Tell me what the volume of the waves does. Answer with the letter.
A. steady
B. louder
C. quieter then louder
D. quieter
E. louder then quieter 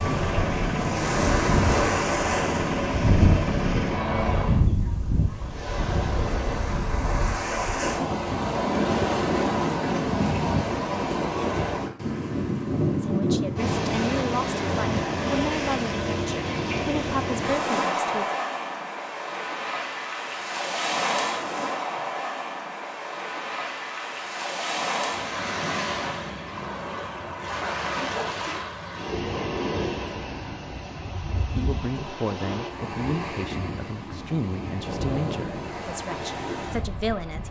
D.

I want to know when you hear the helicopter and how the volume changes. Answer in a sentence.
The helicopter can be heard from 0.0 to 4.7 s, at a steady volume.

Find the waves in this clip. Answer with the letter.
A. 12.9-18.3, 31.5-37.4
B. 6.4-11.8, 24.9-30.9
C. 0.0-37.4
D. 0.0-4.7
C.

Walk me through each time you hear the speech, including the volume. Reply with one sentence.
You can hear the speech from 12.9 to 18.3 s, at a steady volume; and from 31.5 to 37.4 s, at a steady volume.